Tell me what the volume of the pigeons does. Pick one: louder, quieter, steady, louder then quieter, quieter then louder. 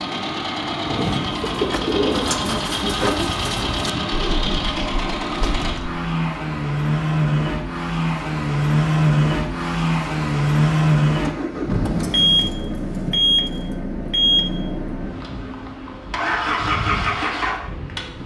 quieter.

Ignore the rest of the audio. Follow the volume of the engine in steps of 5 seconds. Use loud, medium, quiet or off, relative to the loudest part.
medium, loud, loud, medium.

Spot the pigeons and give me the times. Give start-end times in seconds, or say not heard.
0.8-6.0.